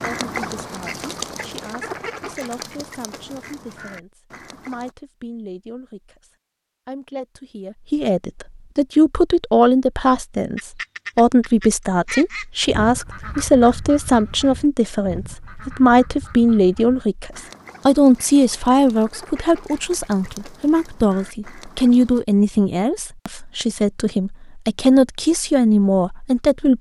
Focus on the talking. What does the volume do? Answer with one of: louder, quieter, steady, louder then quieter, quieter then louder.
louder.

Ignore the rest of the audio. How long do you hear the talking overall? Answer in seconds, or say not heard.
27 s.